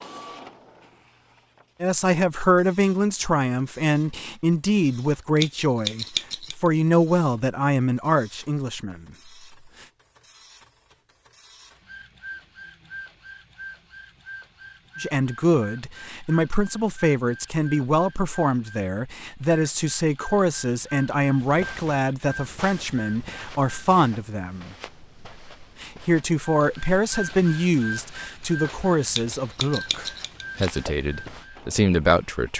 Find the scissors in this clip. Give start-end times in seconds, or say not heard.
5.3-6.5, 29.1-30.9.